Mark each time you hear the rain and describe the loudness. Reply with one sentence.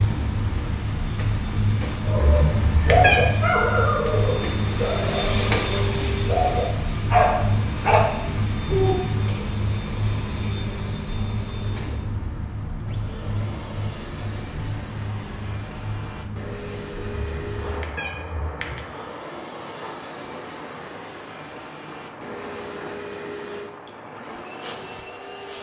The rain can be heard from 0.0 to 25.5 s, getting quieter.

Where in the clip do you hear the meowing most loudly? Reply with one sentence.
The loudest moment of the meowing is at 3 seconds.